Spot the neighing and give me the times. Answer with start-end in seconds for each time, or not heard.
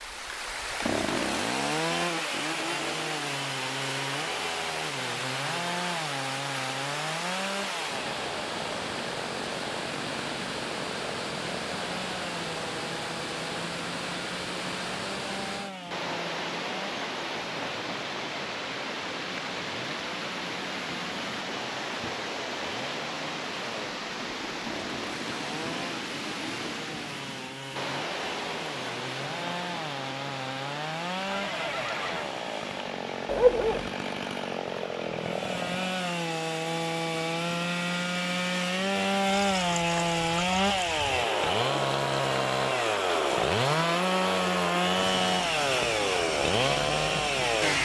31.2-32.4.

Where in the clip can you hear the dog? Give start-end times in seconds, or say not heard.
33.2-33.9.